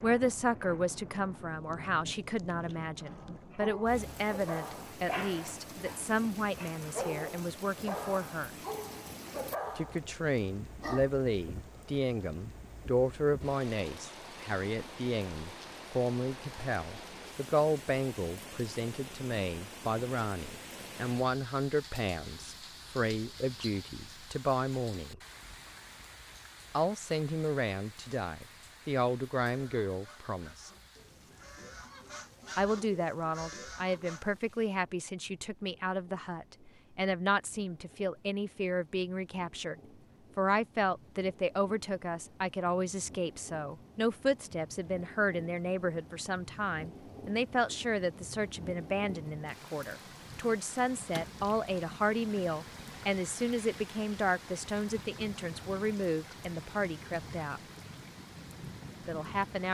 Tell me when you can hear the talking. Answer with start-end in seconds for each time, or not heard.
0.0-8.6, 9.8-25.2, 26.7-30.7, 32.5-39.8, 40.4-57.6, 59.0-59.6.